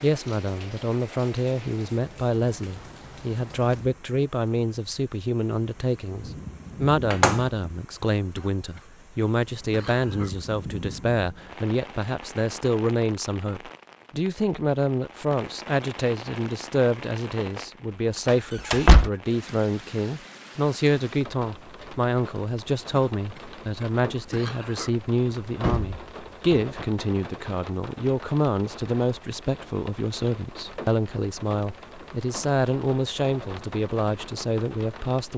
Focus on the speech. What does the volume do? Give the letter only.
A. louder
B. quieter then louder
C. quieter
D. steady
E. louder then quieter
D.